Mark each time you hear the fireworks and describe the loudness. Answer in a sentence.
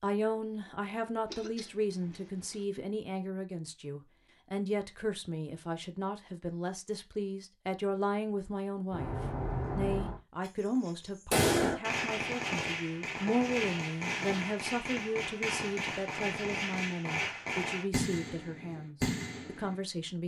You can hear the fireworks briefly from 8.9 to 10.5 s; and from 11.3 to 19.8 s, at a steady volume.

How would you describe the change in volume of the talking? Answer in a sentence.
The volume of the talking stays about the same.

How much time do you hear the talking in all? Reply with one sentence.
You can hear the talking for 20 seconds altogether.